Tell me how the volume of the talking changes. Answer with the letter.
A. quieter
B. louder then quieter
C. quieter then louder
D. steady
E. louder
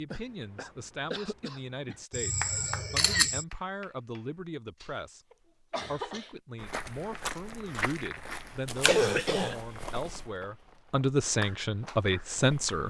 E.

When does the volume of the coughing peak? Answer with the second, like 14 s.
9 s.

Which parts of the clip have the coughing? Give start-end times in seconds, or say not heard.
0.1-2.0, 4.8-6.3, 8.8-9.6.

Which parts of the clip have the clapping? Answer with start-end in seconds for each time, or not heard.
2.4-4.5, 11.4-12.8.